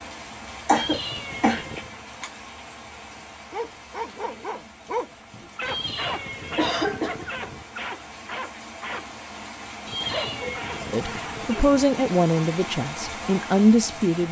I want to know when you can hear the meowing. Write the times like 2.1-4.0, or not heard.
0.7-2.0, 5.6-7.7, 9.8-11.8.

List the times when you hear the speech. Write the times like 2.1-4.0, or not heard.
10.9-14.2.